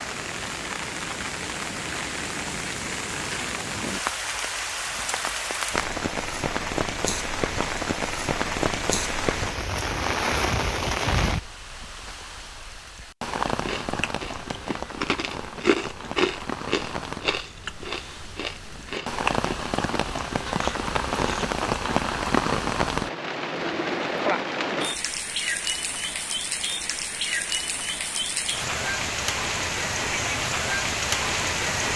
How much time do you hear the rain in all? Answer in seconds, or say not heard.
32 s.